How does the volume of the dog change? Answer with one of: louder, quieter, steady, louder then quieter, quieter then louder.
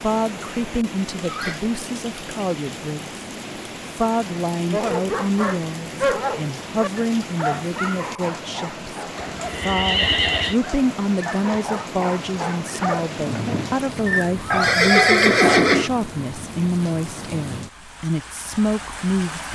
quieter then louder.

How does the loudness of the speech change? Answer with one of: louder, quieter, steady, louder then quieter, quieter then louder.
steady.